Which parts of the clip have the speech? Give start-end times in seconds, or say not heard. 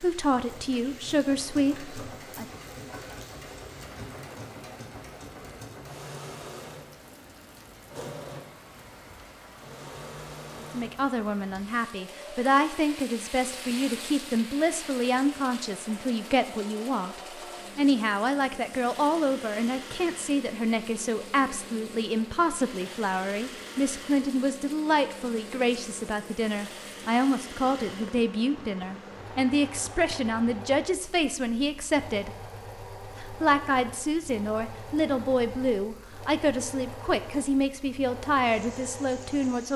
0.0-2.5, 10.7-32.3, 33.1-39.7.